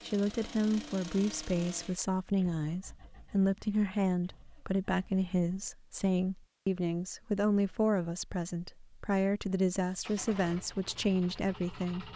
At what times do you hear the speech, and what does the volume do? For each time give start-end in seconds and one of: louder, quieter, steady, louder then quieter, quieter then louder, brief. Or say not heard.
0.0-12.1 steady.